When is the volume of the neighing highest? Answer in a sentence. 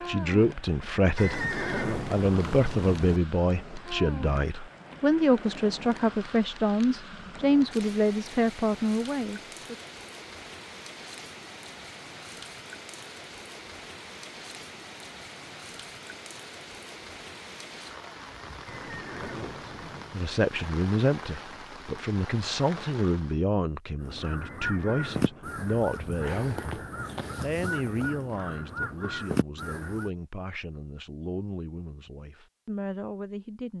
The loudest moment of the neighing is at 2 seconds.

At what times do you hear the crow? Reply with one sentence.
You can hear the crow from 24.0 to 30.1 s.